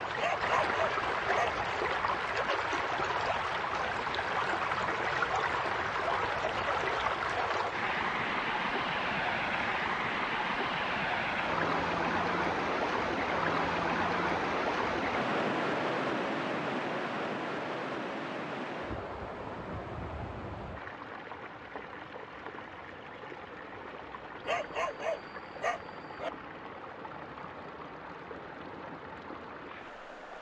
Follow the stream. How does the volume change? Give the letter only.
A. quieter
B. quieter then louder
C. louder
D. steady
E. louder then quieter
A.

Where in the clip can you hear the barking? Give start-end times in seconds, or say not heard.
0.1-1.6, 24.4-26.3.